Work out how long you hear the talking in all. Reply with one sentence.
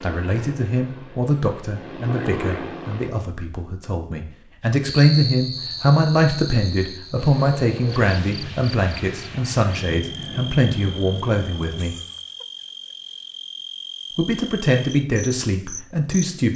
The talking can be heard for 14 seconds in total.